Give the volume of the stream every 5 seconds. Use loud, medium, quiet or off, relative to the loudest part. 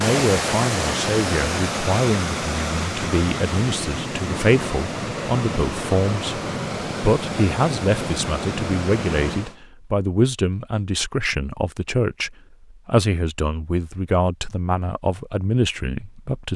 loud, loud, off, off.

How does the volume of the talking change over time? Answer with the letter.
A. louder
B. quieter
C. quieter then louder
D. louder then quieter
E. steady
E.